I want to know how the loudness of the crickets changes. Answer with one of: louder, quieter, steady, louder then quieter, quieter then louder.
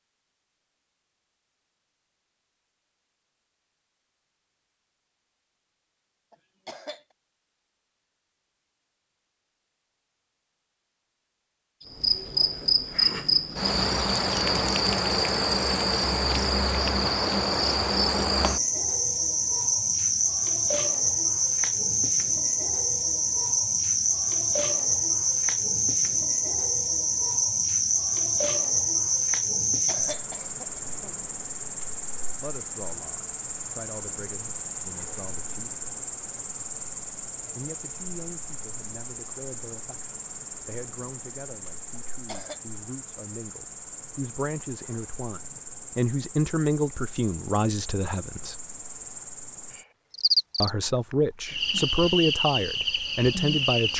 quieter then louder.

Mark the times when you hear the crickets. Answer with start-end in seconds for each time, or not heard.
11.8-53.9.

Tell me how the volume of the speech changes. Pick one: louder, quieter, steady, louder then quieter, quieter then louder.
louder.